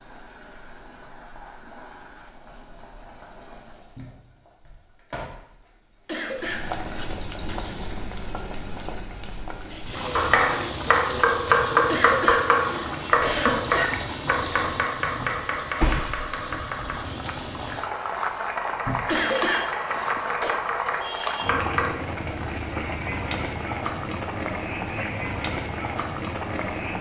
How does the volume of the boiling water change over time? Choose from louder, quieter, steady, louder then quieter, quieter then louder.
louder.